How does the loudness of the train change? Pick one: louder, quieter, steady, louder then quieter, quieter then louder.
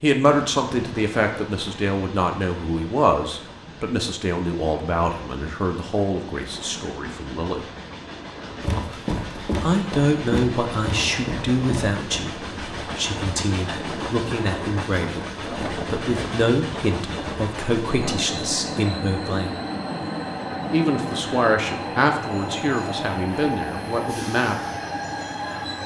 louder.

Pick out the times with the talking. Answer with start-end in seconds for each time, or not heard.
0.0-7.7, 9.6-19.6, 20.7-24.6.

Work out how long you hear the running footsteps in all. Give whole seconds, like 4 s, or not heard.
4 s.